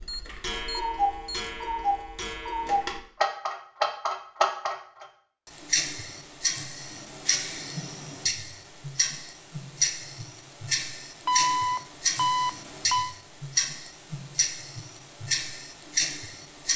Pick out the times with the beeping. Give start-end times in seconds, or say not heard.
0.1-1.5, 11.2-13.2.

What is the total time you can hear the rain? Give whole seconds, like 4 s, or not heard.
not heard.